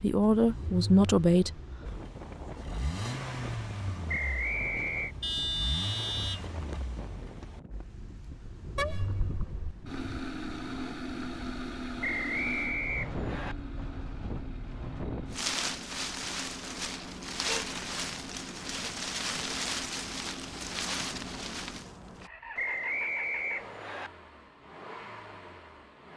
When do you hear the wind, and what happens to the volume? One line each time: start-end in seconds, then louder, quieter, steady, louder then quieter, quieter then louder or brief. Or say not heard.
0.1-22.3 louder.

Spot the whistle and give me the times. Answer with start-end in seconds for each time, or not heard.
4.0-5.2, 12.0-13.6, 22.6-24.1.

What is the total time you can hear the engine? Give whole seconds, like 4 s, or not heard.
26 s.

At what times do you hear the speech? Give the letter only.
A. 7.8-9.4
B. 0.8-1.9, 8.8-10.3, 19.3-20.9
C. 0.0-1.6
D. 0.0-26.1
C.